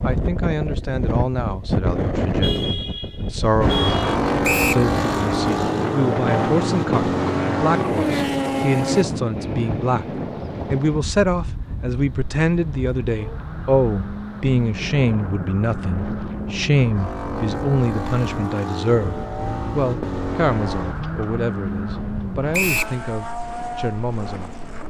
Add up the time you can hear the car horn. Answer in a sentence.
The car horn can be heard for 2 seconds in total.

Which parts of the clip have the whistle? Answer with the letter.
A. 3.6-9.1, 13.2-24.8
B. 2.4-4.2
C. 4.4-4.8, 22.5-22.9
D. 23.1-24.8
C.